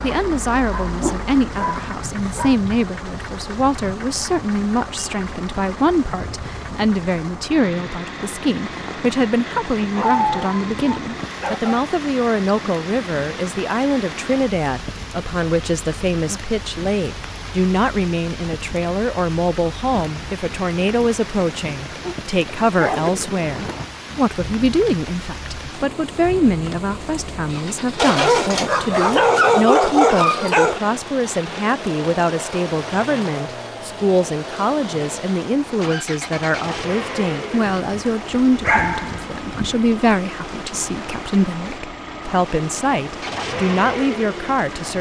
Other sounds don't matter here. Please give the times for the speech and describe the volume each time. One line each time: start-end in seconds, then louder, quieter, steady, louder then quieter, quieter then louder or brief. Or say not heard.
0.0-44.9 steady.